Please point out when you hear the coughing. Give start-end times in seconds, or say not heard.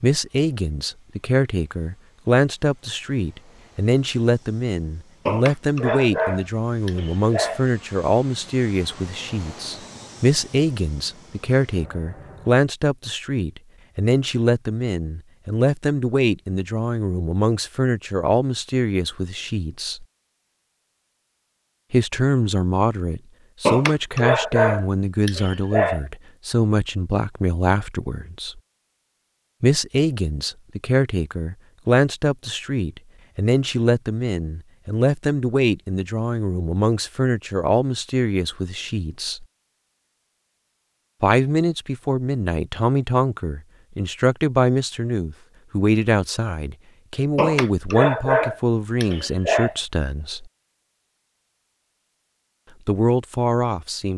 not heard.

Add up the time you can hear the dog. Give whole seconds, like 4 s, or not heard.
7 s.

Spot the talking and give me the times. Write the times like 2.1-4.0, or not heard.
0.0-20.1, 21.9-28.6, 29.6-39.5, 41.2-50.5, 52.9-54.1.